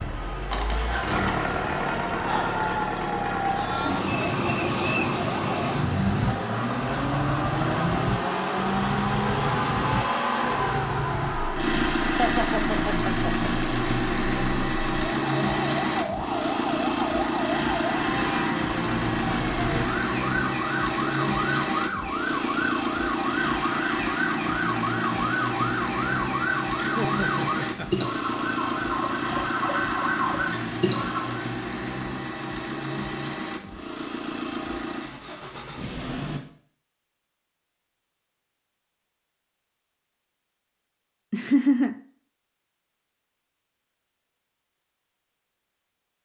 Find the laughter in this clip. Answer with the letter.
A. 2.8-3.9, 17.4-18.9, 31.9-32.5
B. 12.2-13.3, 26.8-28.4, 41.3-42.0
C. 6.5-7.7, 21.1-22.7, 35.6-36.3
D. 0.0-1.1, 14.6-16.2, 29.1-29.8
B.